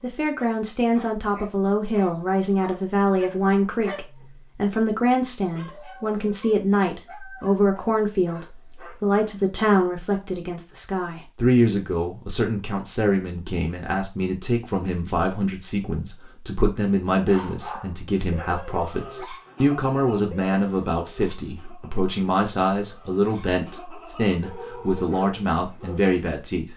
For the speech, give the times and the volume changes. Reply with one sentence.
You can hear the speech from 0.0 to 26.7 s, at a steady volume.